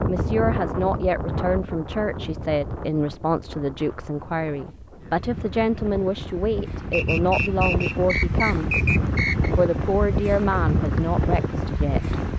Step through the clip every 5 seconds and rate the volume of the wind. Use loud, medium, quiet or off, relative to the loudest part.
medium, loud, loud.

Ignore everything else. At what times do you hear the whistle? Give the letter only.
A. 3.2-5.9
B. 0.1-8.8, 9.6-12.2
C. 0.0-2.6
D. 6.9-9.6
D.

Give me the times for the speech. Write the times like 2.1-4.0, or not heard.
0.1-8.8, 9.6-12.2.